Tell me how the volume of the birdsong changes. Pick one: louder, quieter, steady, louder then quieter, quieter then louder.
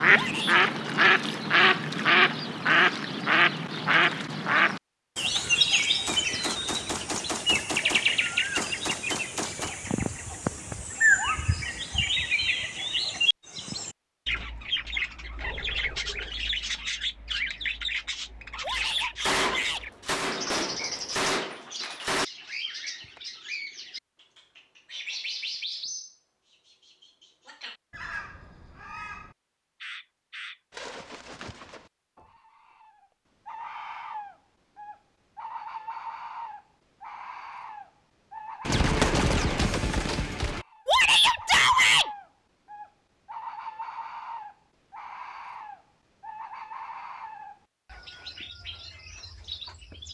quieter.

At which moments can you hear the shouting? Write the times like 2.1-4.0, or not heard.
0.1-0.7, 18.6-19.9, 40.9-42.1.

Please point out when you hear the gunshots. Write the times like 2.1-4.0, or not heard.
6.0-9.8, 18.8-22.2, 38.6-40.6.